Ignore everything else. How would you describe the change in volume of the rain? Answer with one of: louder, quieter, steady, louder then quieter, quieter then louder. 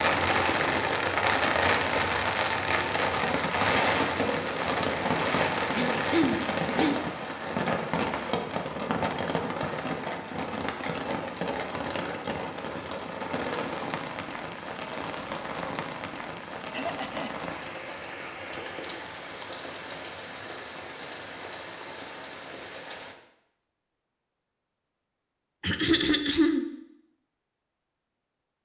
quieter.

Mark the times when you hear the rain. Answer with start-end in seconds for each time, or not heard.
0.0-23.1.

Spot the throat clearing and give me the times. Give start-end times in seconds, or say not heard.
5.8-7.0, 16.7-17.3, 25.6-26.6.